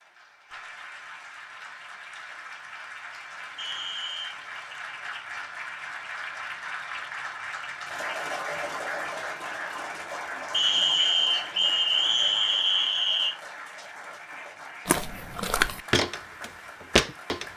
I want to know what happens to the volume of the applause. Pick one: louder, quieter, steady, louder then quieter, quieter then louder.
louder then quieter.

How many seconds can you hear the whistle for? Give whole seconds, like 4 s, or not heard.
4 s.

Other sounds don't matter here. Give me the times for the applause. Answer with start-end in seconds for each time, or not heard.
0.0-17.5.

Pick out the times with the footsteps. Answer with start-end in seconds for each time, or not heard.
14.8-17.4.